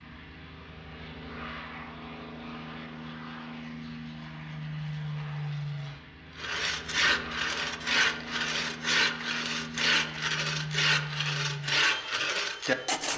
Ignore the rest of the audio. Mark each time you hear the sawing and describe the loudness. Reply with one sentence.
You can hear the sawing from 6.3 to 13.1 s, at a steady volume.